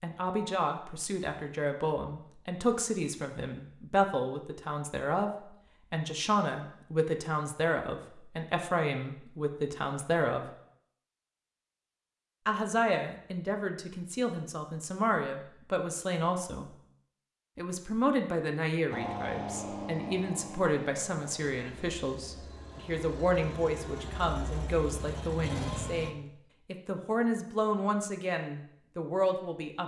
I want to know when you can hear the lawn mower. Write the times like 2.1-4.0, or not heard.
18.9-26.1.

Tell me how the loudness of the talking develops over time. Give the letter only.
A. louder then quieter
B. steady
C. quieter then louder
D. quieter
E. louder
B.